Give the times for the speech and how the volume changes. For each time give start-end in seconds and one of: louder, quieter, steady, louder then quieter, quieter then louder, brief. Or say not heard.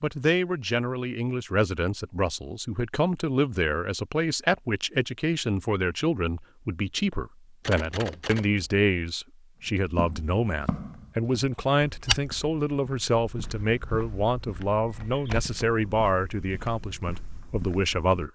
0.0-18.3 steady.